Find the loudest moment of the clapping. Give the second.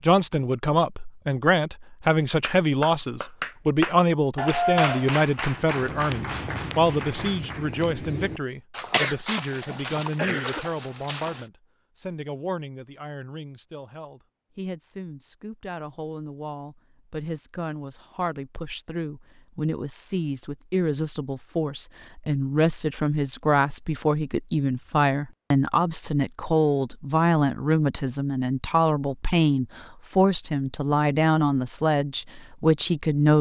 5 s.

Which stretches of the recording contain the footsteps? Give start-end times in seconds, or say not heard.
5.5-11.5.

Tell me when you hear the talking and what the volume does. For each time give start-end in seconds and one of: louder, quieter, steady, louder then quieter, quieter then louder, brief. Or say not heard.
0.0-33.3 quieter then louder.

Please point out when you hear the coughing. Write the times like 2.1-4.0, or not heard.
8.9-10.7.